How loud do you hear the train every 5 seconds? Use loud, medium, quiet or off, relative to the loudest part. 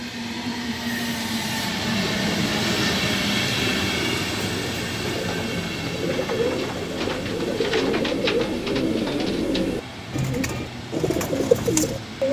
loud, medium, medium.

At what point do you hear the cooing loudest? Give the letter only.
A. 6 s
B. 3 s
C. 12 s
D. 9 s
C.